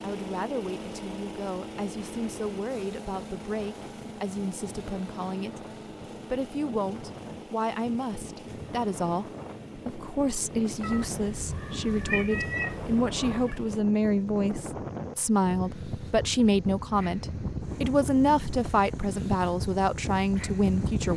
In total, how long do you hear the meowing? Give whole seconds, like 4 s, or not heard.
3 s.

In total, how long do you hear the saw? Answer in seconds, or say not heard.
not heard.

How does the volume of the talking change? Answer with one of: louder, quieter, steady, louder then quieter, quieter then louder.
louder.